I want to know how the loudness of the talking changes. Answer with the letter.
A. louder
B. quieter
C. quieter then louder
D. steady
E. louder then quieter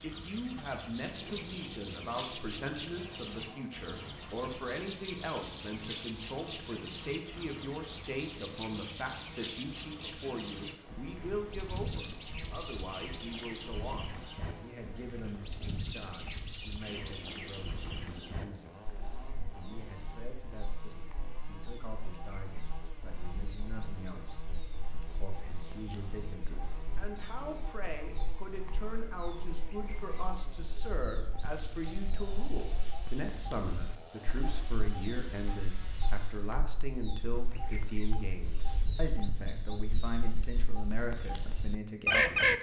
C.